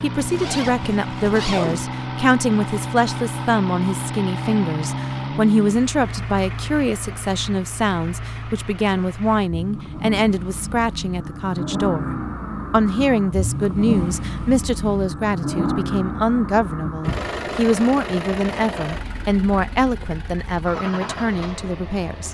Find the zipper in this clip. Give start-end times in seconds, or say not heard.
0.1-1.9.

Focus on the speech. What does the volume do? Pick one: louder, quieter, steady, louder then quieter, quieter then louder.
steady.